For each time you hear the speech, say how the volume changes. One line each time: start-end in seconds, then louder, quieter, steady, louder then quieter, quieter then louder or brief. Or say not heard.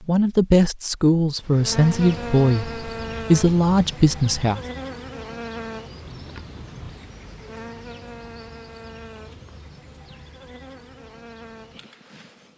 0.1-4.6 steady.